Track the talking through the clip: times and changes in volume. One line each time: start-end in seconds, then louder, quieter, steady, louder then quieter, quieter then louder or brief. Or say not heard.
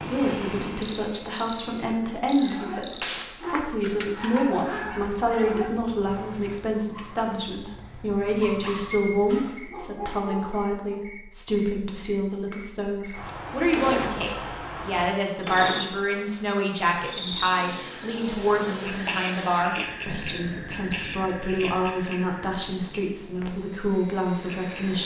0.1-25.0 steady.